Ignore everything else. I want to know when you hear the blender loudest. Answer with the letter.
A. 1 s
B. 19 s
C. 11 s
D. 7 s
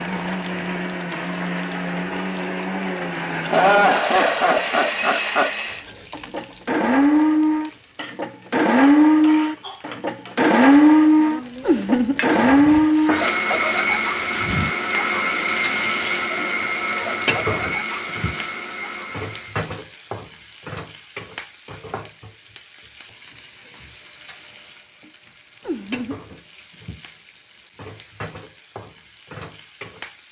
C.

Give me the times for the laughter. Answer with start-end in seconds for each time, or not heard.
3.3-5.5, 11.6-12.2, 25.6-26.2.